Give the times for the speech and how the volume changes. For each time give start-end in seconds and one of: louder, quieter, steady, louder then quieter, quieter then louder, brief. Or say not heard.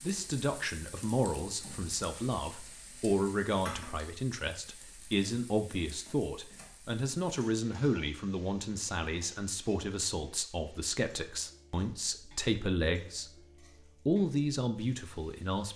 0.0-13.2 steady
14.1-15.7 brief.